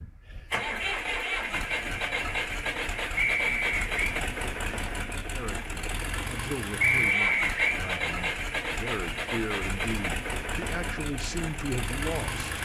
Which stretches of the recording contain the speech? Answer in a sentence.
You can hear the speech from 5.2 to 12.5 s.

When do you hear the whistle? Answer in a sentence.
The whistle can be heard from 3.1 to 4.2 s and from 6.8 to 7.8 s.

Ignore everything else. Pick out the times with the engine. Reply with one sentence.
You can hear the engine from 0.0 to 12.5 s.